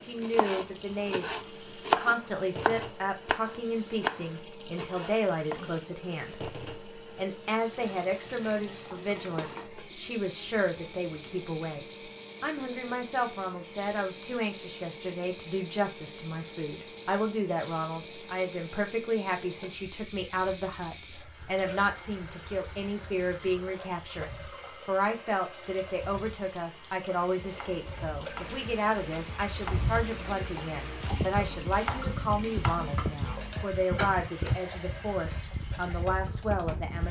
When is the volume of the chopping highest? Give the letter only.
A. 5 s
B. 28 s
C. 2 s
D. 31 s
C.